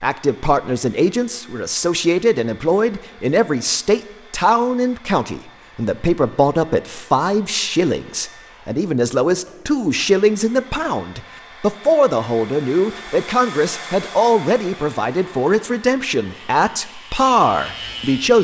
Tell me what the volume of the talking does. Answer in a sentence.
The loudness of the talking stays about the same.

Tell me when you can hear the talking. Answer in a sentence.
You can hear the talking from 0.0 to 18.3 s.